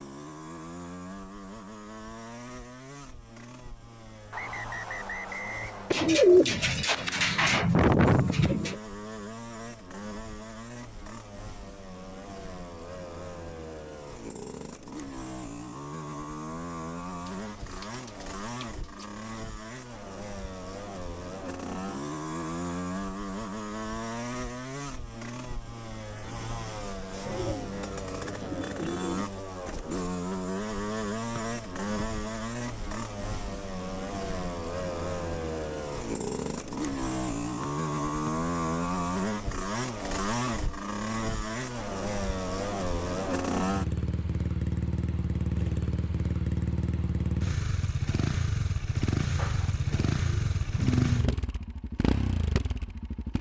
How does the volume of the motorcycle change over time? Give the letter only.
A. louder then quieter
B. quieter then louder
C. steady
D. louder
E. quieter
D.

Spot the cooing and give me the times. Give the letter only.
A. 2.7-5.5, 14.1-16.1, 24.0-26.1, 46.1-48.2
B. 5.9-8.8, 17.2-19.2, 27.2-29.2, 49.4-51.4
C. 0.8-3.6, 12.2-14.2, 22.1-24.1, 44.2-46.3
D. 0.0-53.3
B.